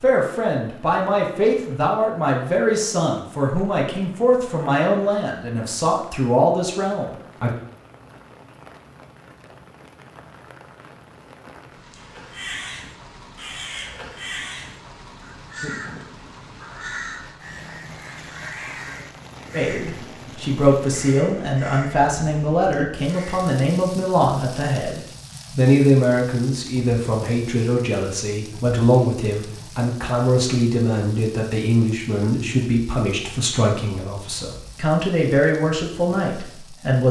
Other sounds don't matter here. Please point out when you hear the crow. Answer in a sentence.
The crow can be heard from 11.9 to 23.5 s.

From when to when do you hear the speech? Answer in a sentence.
The speech can be heard from 0.0 to 7.5 s and from 19.5 to 37.0 s.